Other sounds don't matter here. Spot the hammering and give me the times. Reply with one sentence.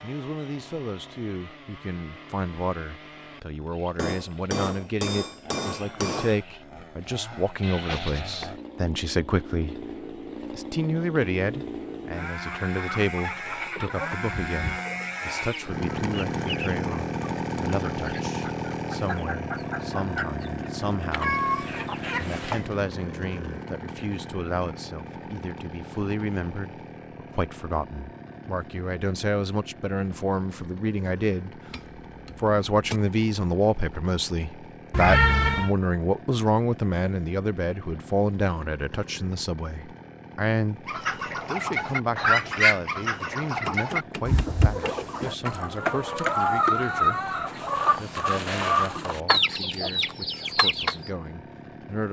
You can hear the hammering from 4.0 to 6.4 s, from 31.7 to 33.0 s and from 43.6 to 45.5 s.